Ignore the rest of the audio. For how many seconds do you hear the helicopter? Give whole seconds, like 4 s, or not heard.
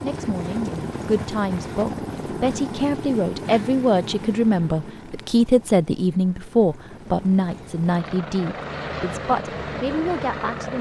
11 s.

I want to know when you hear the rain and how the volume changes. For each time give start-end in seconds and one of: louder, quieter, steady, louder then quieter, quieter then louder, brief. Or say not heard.
not heard.